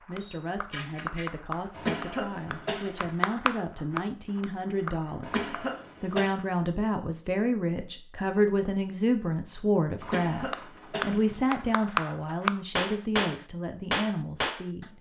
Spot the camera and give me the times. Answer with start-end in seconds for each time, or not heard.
0.2-1.2.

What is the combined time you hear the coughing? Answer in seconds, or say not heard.
4 s.